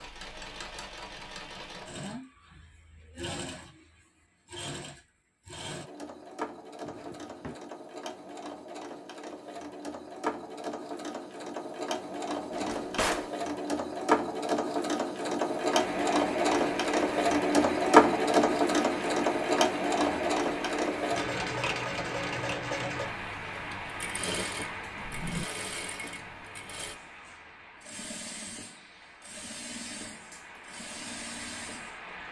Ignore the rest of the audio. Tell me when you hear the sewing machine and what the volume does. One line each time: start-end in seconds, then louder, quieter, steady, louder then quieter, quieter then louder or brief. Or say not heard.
0.0-32.2 louder then quieter.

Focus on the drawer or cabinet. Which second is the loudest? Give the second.
13 s.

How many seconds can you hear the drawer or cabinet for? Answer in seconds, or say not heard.
2 s.